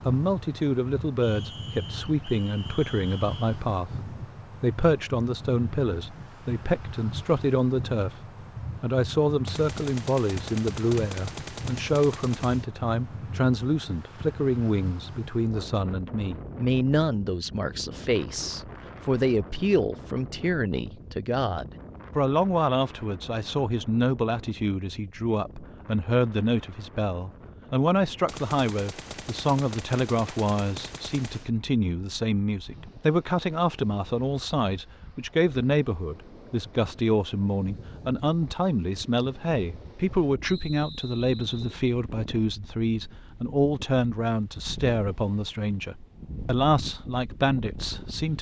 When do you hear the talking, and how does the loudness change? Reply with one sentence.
The talking can be heard from 0.1 to 8.2 s, at a steady volume; and from 8.8 to 48.3 s, at a steady volume.